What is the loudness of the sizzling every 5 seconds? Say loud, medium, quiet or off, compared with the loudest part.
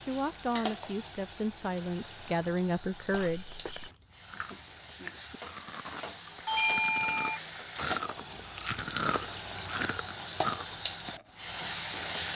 medium, medium, loud.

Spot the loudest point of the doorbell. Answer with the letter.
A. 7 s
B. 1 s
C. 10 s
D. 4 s
A.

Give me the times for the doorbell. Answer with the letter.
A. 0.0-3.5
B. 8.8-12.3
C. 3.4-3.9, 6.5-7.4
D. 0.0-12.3
C.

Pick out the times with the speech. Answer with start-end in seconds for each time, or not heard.
0.0-3.5.